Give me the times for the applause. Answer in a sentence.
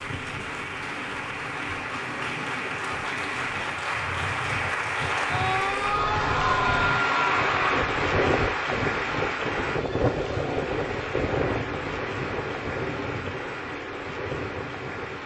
The applause can be heard from 0.0 to 15.2 s.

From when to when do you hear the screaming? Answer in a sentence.
The screaming can be heard from 5.2 to 7.8 s.